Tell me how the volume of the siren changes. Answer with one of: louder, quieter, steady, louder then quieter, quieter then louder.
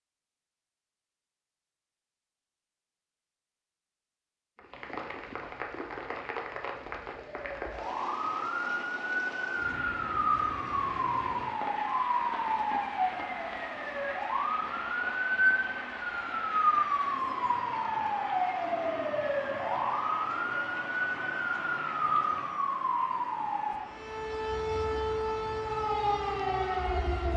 steady.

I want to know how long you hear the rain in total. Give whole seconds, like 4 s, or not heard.
23 s.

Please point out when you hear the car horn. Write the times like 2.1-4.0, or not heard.
not heard.